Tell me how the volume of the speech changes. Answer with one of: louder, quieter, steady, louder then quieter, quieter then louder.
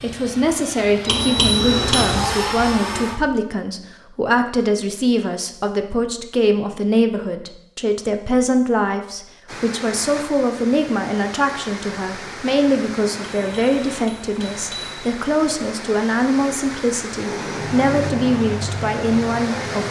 steady.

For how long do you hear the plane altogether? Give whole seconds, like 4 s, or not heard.
6 s.